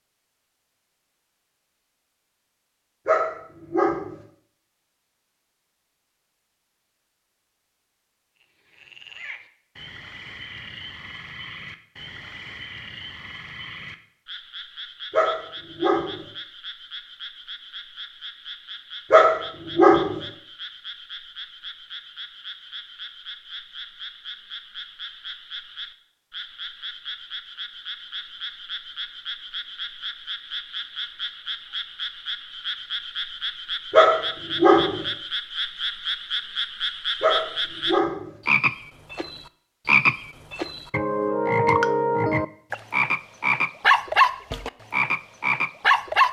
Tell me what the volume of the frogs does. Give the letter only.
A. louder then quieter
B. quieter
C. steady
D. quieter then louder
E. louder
E.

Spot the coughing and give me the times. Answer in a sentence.
You can't hear the coughing here.